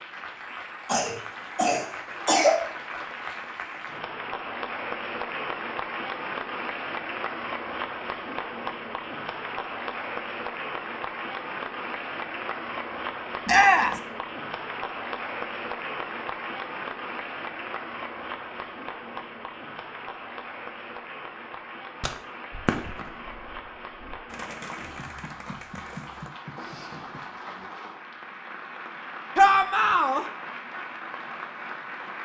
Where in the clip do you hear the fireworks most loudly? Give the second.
23 s.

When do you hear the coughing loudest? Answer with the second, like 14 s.
2 s.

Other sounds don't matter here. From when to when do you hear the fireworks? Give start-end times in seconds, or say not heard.
22.0-27.4.